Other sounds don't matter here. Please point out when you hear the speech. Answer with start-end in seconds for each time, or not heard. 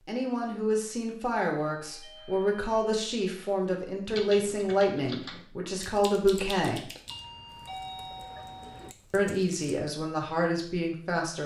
0.1-6.8, 9.1-11.4.